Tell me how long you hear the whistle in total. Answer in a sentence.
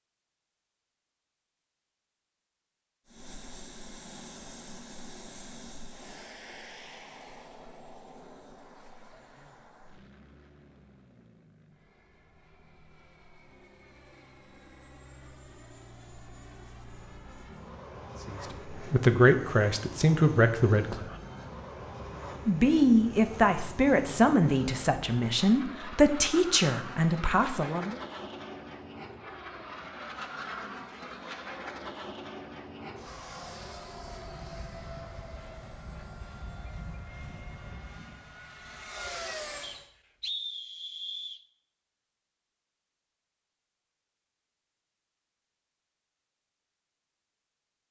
You can hear the whistle for 2 seconds altogether.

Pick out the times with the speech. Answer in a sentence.
You can hear the speech from 18.2 to 21.1 s and from 22.4 to 28.0 s.